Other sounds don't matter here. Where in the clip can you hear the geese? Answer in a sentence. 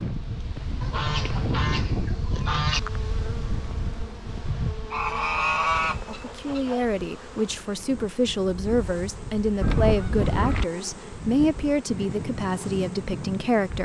You can hear the geese from 0.8 to 2.8 s, from 4.9 to 6.8 s and from 9.6 to 10.7 s.